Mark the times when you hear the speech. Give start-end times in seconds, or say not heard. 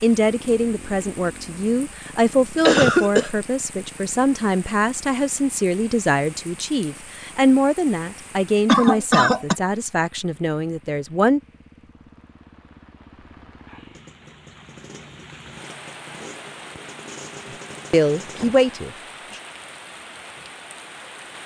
0.0-11.4, 17.9-19.4.